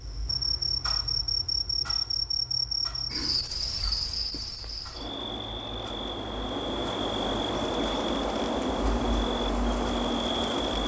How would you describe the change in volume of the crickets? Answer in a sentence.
The loudness of the crickets goes down, then up.